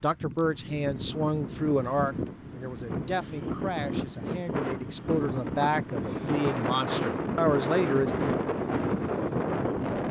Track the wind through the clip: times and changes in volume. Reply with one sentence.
The wind can be heard from 0.0 to 10.0 s, getting louder.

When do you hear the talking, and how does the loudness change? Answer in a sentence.
The talking can be heard from 0.0 to 8.1 s, getting quieter then louder.